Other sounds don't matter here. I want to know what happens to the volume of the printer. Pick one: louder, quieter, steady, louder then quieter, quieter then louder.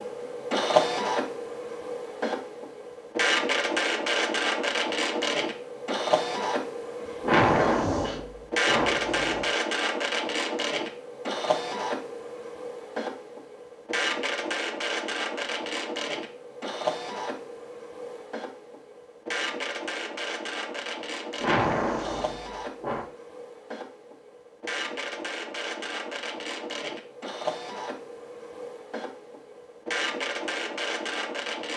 quieter.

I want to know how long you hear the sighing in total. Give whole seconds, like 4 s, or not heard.
4 s.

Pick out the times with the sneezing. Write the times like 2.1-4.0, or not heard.
7.0-8.2.